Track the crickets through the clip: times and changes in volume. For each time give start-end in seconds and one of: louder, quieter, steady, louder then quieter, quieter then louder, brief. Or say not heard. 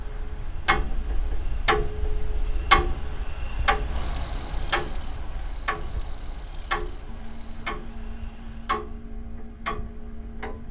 0.0-8.9 louder then quieter.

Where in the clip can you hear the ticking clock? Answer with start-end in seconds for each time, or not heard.
0.0-10.6.